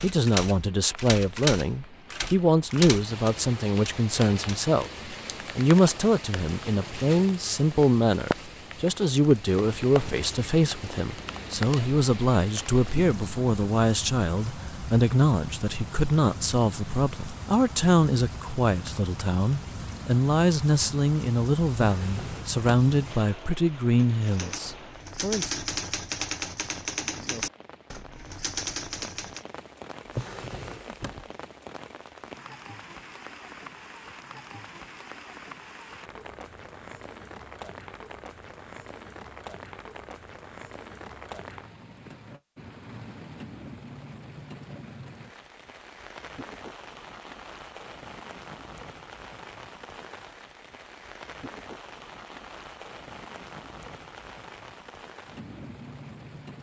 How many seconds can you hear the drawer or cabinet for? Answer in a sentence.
The drawer or cabinet can be heard for 2 seconds in total.